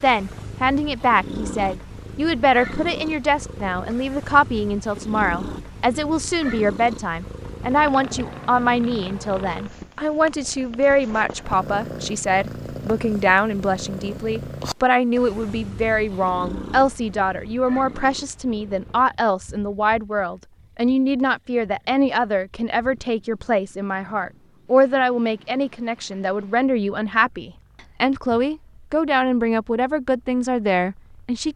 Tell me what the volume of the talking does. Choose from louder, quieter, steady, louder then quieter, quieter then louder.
steady.